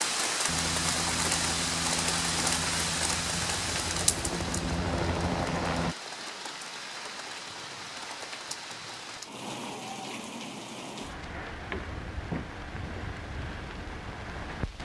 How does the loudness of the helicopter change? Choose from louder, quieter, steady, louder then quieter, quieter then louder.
louder.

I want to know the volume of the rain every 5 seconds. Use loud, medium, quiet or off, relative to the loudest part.
loud, medium, medium.